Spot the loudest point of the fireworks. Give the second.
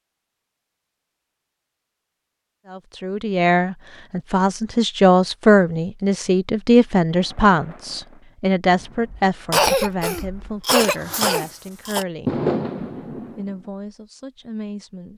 12 s.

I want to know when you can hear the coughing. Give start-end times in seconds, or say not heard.
9.5-12.1.